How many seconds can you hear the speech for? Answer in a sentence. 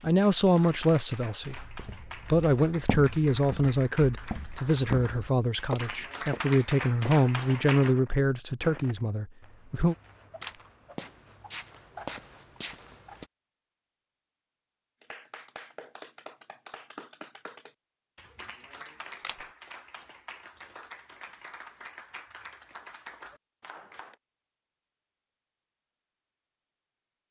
The speech can be heard for 10 seconds in total.